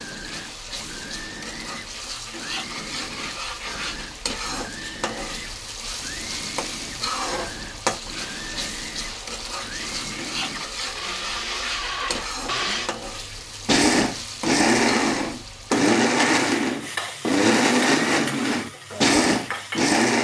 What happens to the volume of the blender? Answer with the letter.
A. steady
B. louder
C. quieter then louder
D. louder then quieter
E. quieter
B.